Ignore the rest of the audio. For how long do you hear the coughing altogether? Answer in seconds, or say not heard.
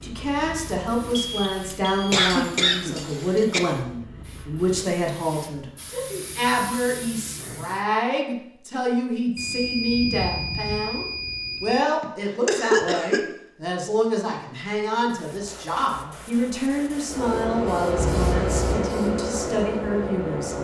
3 s.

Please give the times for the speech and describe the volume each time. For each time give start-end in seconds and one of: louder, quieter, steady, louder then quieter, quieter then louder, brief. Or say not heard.
0.0-20.5 steady.